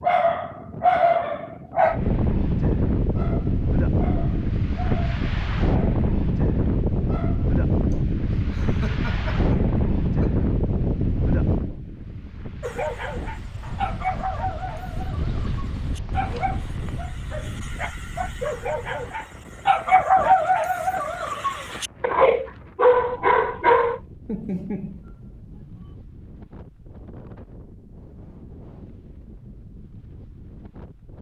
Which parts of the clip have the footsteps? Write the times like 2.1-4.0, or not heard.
not heard.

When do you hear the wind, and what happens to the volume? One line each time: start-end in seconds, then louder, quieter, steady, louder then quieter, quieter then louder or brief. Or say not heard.
0.0-31.1 quieter.